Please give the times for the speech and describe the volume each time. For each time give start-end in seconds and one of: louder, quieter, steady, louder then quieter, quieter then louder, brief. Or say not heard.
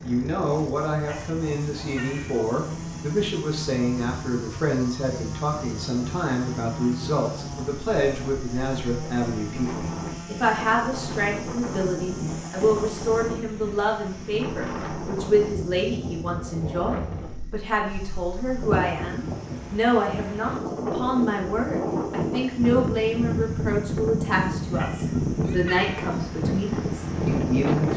0.0-27.9 steady.